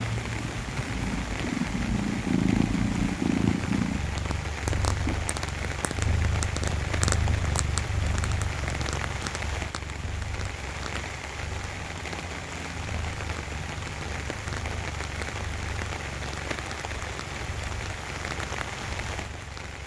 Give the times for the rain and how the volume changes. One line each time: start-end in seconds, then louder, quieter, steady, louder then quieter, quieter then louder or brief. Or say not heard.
0.0-19.8 steady.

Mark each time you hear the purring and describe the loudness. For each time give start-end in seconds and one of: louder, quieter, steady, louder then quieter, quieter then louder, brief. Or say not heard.
0.0-19.8 quieter.